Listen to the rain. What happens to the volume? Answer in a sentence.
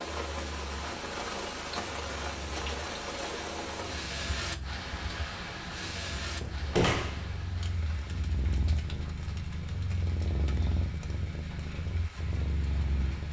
The volume of the rain goes down.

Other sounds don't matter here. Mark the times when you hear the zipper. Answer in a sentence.
The zipper can't be heard in this clip.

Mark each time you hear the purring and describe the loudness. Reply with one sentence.
You can hear the purring from 0.0 to 13.2 s, getting louder.